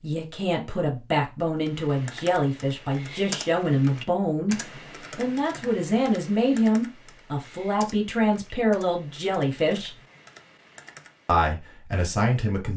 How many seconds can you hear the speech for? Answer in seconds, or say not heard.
11 s.